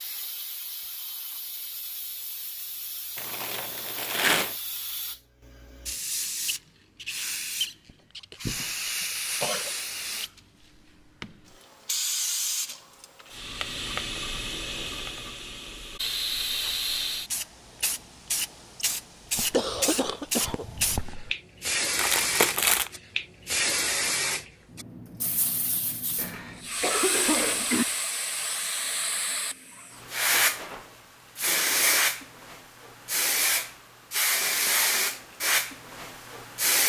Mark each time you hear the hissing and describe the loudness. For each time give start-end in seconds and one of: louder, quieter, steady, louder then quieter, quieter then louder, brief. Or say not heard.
0.0-36.8 louder.